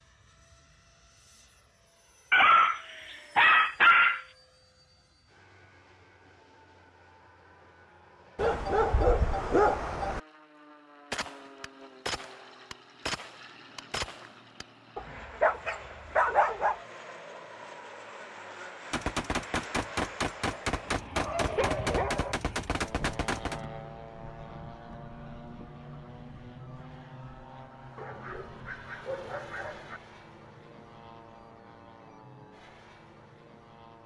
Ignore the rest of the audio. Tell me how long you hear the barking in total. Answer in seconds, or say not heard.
9 s.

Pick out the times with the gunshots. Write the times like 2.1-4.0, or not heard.
11.1-14.7, 18.9-23.6.